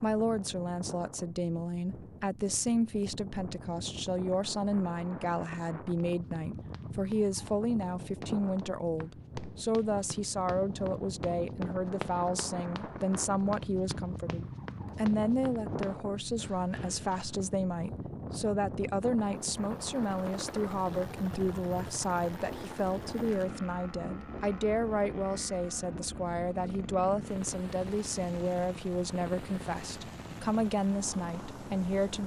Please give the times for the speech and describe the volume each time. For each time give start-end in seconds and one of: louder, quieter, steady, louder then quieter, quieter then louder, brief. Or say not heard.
0.0-32.2 steady.